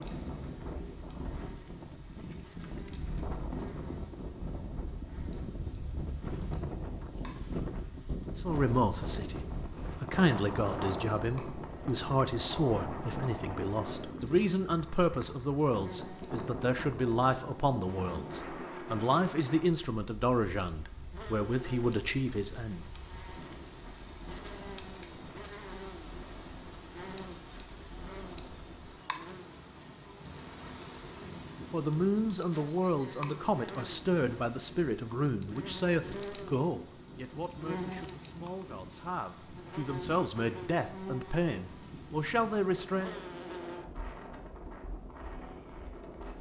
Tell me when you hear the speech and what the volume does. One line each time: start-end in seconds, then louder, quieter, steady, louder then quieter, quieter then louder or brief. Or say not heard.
8.3-22.9 steady
31.7-43.2 quieter then louder.